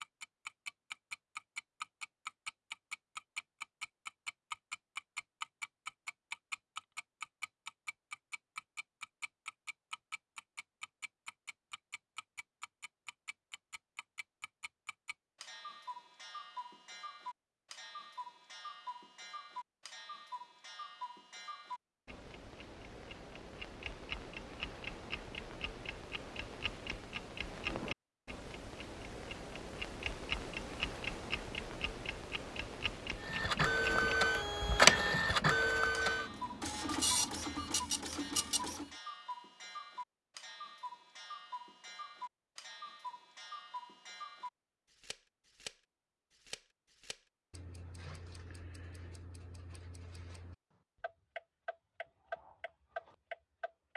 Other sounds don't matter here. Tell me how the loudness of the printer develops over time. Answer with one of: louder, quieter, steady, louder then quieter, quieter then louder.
louder then quieter.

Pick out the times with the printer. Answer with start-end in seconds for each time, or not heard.
33.2-38.9.